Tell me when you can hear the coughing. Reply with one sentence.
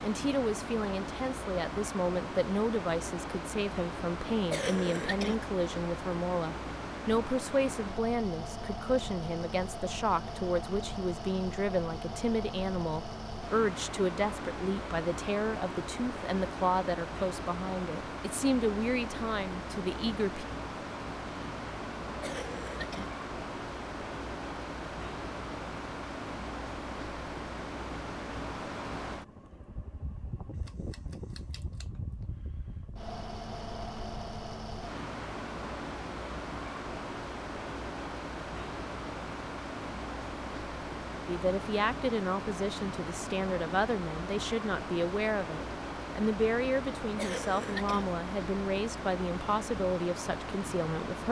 You can hear the coughing from 4.5 to 5.4 s, from 22.2 to 23.1 s and from 47.1 to 48.0 s.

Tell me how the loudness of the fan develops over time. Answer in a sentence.
The volume of the fan stays about the same.